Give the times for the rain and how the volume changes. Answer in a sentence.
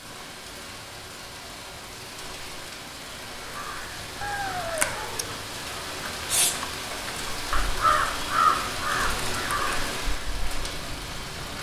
The rain can be heard from 0.0 to 11.5 s, getting louder.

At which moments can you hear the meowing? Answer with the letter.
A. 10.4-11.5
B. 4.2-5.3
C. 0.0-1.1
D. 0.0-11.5
B.